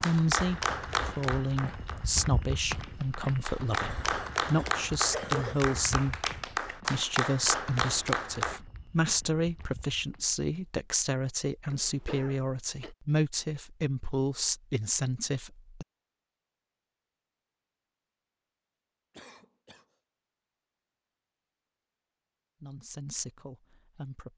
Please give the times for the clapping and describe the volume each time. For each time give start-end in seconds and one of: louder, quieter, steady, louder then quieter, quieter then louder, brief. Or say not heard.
0.0-8.6 quieter then louder.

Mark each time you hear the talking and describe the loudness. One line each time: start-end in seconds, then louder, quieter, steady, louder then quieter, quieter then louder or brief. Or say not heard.
0.0-15.8 steady
22.6-24.3 brief.